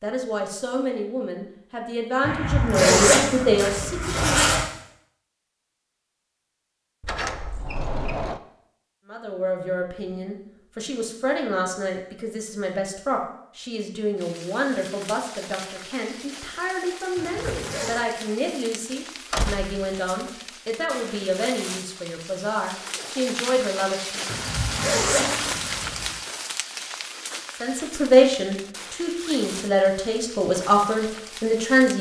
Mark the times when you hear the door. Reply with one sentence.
The door can be heard from 7.0 to 8.4 s and from 19.3 to 20.3 s.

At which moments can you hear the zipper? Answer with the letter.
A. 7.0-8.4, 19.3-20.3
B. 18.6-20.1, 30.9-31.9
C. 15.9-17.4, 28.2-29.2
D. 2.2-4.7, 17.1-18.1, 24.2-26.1
D.